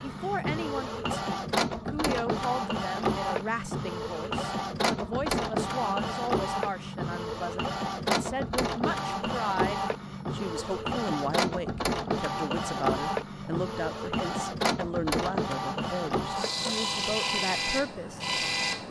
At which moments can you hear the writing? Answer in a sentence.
The writing can't be heard in this clip.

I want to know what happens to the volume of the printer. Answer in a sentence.
The loudness of the printer stays about the same.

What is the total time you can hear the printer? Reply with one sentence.
You can hear the printer for 19 seconds altogether.